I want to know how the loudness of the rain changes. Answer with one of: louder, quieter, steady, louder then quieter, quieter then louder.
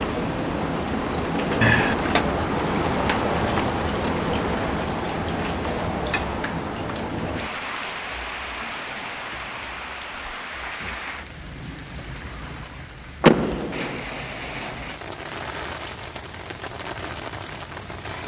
quieter.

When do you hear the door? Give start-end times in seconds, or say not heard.
1.6-2.2, 13.2-14.0.